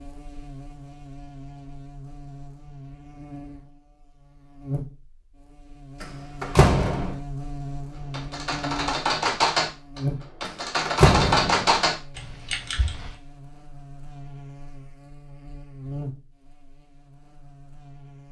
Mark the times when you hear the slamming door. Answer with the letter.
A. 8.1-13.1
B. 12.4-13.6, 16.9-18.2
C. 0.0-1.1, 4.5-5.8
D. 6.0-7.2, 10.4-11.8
D.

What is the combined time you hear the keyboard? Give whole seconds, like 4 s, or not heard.
5 s.